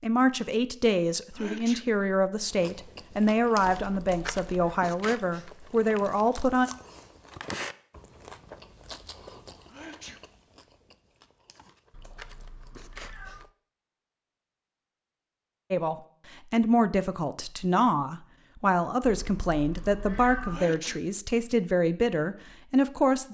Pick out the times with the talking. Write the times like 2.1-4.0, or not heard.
0.0-6.7, 15.7-23.2.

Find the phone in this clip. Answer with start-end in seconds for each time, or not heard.
not heard.